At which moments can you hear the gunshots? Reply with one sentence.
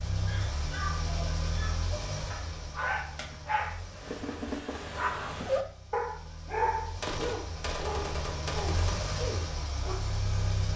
You can hear the gunshots from 7.0 to 9.0 s.